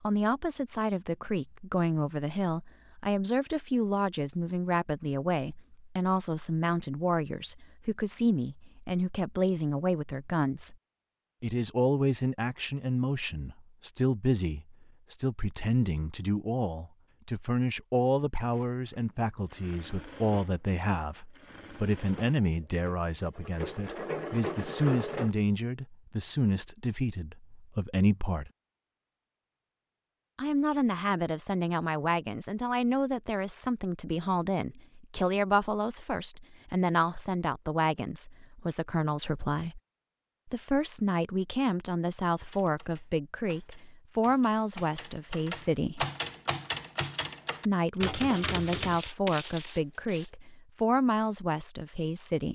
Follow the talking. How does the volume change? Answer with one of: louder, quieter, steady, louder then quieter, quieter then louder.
steady.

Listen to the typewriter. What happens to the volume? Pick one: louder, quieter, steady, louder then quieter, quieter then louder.
louder.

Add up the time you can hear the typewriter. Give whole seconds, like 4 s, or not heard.
7 s.